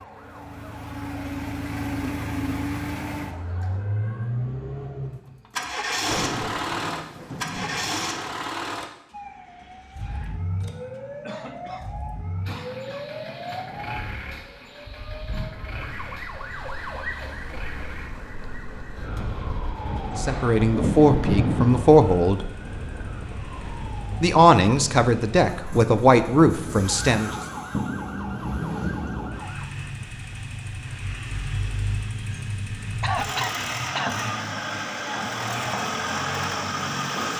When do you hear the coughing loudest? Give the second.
33 s.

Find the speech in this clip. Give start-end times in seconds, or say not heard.
20.1-22.5, 24.2-27.4.